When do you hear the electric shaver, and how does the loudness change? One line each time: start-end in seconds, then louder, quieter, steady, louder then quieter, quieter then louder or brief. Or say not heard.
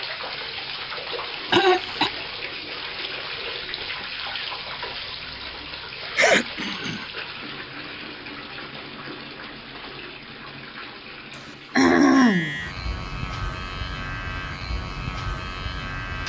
12.1-16.2 steady.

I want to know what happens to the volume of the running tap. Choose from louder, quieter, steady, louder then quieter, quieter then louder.
quieter.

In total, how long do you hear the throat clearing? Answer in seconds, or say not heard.
2 s.